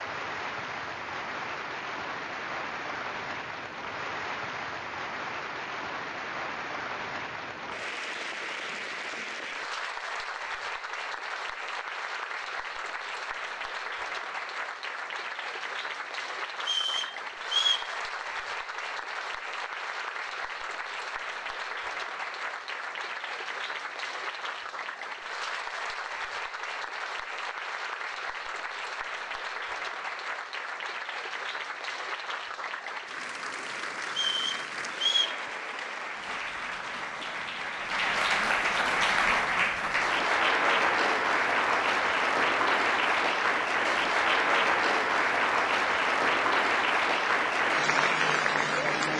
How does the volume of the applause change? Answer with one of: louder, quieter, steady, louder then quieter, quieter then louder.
louder.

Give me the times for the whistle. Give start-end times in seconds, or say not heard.
16.6-17.9, 34.1-35.4.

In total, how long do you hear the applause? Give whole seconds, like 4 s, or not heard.
49 s.